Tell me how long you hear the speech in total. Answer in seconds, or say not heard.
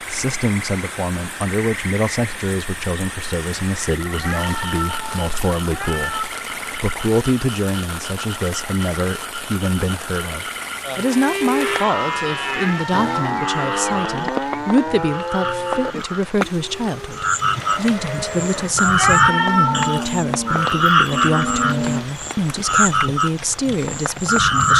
25 s.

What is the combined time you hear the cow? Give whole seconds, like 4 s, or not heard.
11 s.